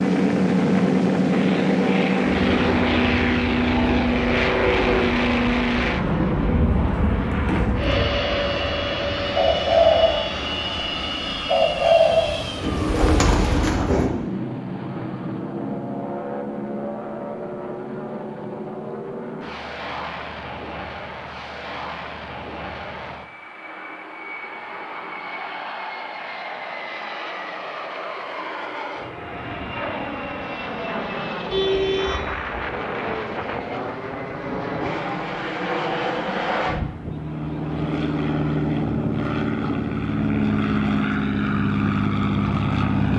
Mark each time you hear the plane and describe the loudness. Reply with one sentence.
The plane can be heard from 0.0 to 43.1 s, getting quieter then louder.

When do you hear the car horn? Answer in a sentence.
The car horn can be heard from 31.5 to 32.5 s.